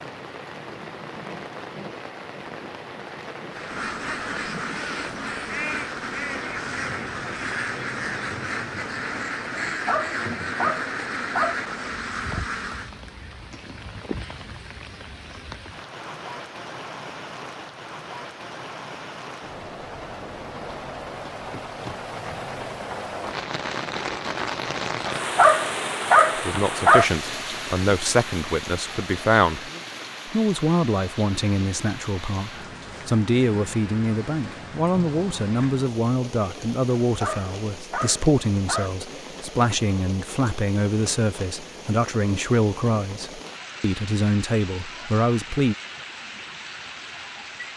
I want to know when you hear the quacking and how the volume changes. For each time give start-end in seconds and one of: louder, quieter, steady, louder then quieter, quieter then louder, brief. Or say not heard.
3.5-12.9 steady.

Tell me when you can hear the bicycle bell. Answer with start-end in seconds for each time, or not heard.
not heard.